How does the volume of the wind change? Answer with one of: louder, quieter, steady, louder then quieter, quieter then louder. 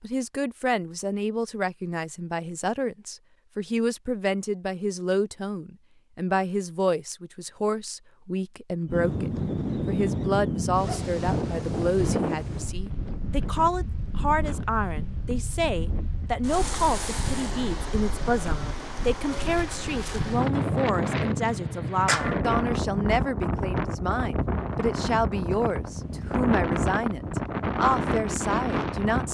quieter then louder.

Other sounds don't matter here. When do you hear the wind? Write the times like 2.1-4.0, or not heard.
8.8-29.2.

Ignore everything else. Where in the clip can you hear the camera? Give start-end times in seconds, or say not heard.
not heard.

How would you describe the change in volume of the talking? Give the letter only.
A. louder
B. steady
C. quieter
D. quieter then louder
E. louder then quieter
B.